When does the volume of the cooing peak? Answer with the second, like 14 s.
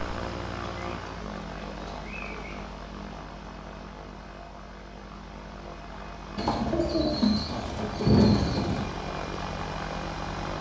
8 s.